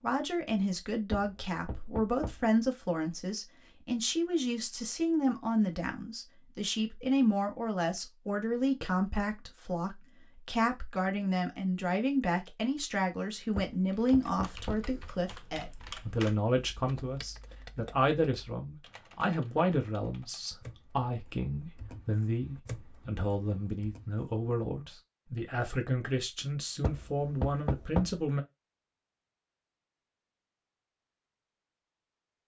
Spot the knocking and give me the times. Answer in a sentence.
You can hear the knocking from 1.1 to 2.5 s, from 13.6 to 14.9 s and from 26.8 to 28.2 s.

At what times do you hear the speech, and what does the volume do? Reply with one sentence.
The speech can be heard from 0.0 to 28.4 s, at a steady volume.